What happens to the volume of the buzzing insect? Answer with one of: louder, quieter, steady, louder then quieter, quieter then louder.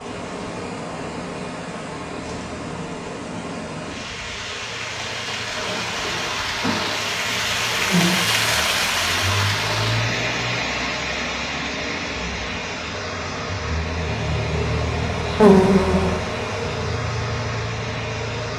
louder.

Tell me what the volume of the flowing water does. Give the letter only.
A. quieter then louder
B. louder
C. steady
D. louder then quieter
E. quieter
D.